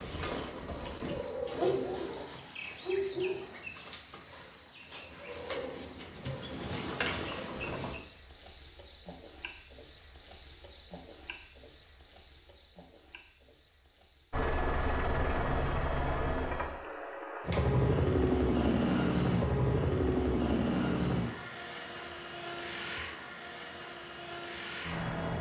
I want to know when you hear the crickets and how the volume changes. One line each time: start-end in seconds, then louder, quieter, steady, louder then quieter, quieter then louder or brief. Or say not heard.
0.0-25.3 quieter.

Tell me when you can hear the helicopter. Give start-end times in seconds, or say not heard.
14.3-25.3.